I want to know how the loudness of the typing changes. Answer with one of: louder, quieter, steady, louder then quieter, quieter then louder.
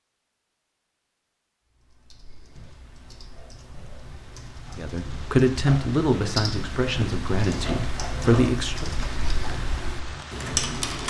louder.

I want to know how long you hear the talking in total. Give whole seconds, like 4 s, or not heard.
4 s.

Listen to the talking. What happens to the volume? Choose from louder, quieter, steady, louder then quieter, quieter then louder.
quieter then louder.